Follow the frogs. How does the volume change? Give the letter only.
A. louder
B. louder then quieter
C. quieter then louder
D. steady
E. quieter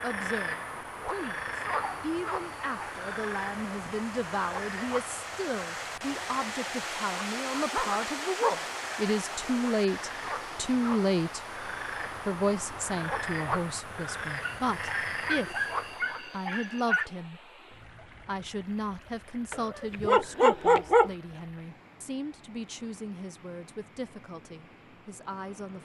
C.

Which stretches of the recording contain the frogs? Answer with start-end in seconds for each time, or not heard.
0.0-16.2.